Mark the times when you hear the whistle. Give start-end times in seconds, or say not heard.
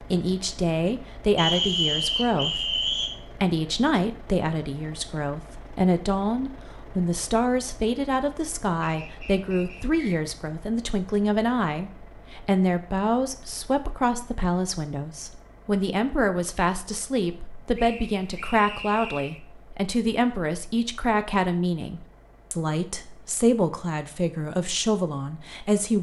1.4-3.1, 8.8-10.3, 17.8-19.4.